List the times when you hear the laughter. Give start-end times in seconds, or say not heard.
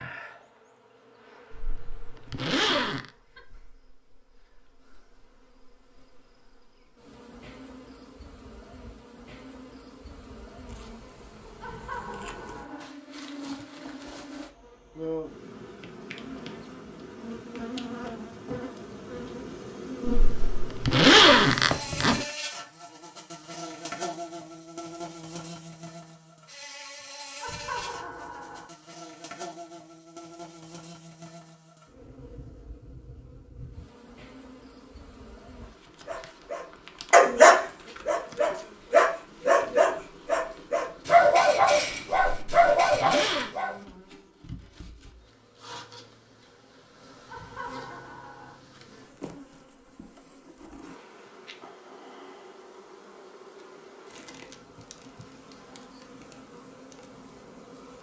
11.6-12.9, 27.4-28.6, 47.2-48.5.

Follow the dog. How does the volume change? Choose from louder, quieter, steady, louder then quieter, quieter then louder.
quieter.